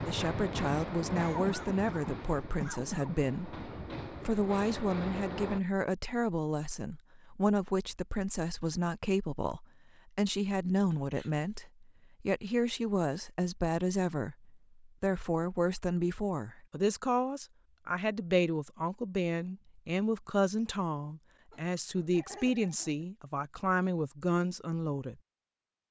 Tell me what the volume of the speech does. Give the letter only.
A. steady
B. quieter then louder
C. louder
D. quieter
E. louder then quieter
A.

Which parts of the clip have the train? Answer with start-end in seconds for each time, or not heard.
0.0-5.6.